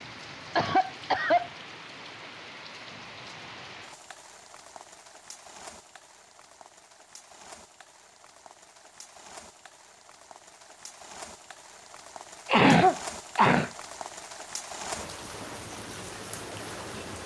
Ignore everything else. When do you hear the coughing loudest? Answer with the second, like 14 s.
13 s.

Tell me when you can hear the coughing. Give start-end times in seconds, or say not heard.
0.6-1.5, 12.4-13.7.